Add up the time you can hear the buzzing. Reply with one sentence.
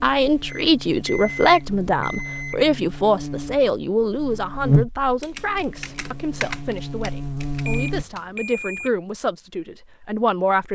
The buzzing can be heard for 8 seconds in total.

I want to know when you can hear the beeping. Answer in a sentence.
You can hear the beeping from 0.5 to 2.6 s and from 7.7 to 8.9 s.